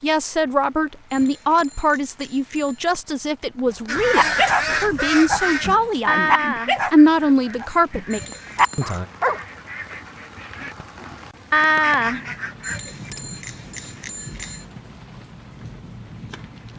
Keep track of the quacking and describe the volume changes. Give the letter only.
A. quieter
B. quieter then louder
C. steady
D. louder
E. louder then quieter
B.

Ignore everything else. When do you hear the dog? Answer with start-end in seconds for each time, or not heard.
3.7-9.4.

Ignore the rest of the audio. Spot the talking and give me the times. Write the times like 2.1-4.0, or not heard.
0.0-9.1.